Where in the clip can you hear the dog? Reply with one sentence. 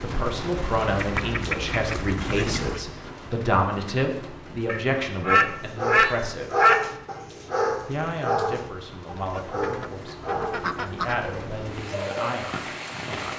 You can hear the dog from 4.9 to 12.5 s.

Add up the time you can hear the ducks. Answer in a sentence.
You can hear the ducks for 6 seconds altogether.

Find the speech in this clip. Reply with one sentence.
The speech can be heard from 0.0 to 6.6 s and from 7.8 to 13.3 s.